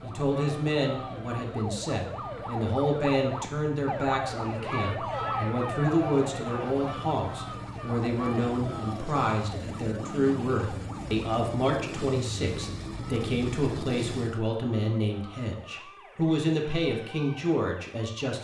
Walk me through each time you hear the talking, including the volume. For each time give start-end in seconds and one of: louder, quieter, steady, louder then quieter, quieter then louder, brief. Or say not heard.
0.0-18.4 steady.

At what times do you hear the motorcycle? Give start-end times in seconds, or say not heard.
0.0-14.4.